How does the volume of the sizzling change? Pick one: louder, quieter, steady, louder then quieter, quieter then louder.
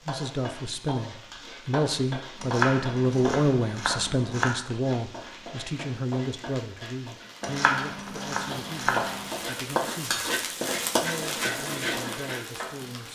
louder.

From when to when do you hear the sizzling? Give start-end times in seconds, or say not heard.
0.0-13.1.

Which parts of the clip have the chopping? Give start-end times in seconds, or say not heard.
2.4-4.5, 7.4-9.4.